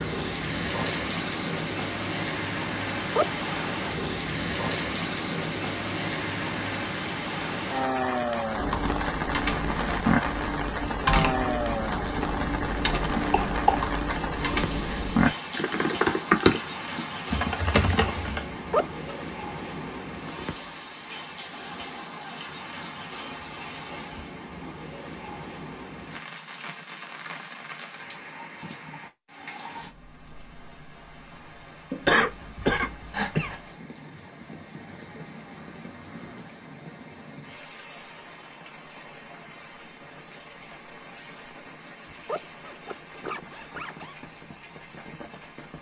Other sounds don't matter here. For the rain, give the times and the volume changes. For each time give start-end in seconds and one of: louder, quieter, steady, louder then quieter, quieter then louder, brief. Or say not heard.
0.0-45.7 quieter.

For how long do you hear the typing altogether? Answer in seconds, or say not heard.
10 s.